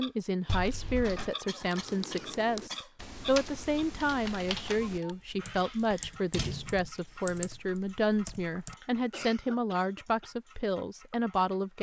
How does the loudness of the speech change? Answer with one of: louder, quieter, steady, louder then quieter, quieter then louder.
steady.